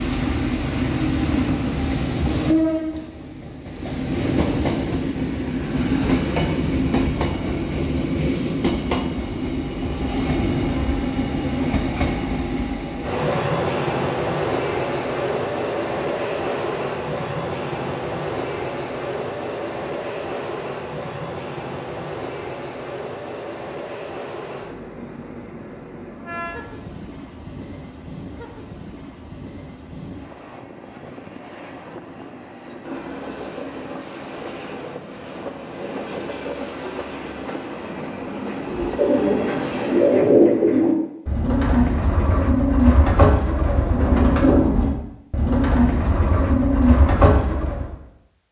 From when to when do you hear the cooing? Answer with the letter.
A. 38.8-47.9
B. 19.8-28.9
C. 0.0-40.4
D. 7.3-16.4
A.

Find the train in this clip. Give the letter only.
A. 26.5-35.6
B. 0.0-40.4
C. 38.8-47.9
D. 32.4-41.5
B.